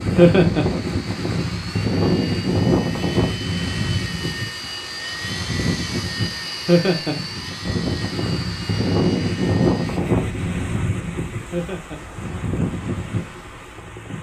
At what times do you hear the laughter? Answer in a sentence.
You can hear the laughter from 0.1 to 0.7 s, from 6.7 to 7.2 s and from 11.5 to 12.0 s.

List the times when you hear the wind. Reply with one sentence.
You can hear the wind from 0.0 to 14.1 s.